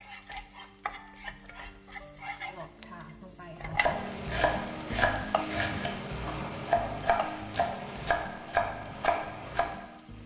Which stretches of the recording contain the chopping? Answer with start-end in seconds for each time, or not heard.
3.8-9.7.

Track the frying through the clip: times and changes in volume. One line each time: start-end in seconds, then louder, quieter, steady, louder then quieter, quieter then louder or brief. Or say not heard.
0.0-10.2 louder then quieter.